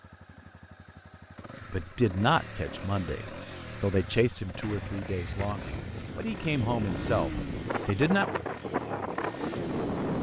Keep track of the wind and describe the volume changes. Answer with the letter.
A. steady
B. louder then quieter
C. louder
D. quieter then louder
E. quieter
C.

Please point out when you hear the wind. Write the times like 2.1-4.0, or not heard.
4.6-10.1.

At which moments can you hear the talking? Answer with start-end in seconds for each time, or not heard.
1.7-8.4.